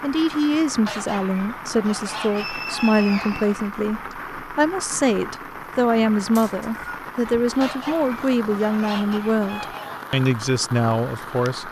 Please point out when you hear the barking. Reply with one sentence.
The barking can't be heard in this clip.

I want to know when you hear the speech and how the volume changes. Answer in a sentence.
The speech can be heard from 0.0 to 11.6 s, at a steady volume.